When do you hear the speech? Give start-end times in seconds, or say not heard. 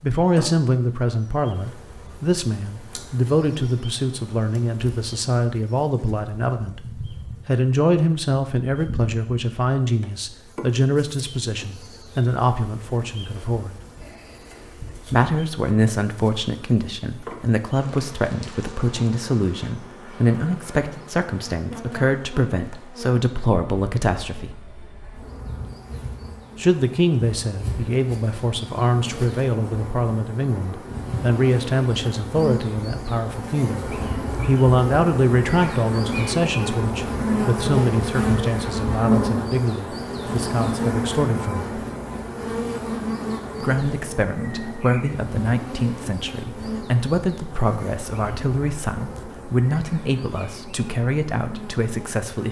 0.0-6.8, 7.5-13.8, 15.1-24.5, 26.6-41.7, 43.6-52.4.